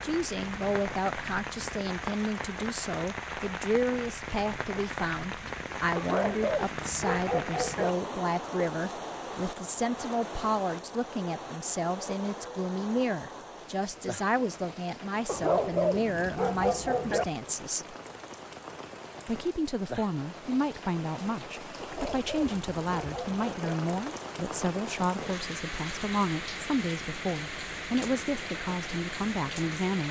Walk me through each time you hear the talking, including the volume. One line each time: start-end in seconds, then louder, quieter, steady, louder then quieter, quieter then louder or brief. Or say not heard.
0.0-17.9 steady
19.2-30.0 steady.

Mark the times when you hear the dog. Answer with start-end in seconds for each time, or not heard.
6.0-8.0, 15.2-17.2, 21.8-23.8.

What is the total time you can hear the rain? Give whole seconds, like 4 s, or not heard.
30 s.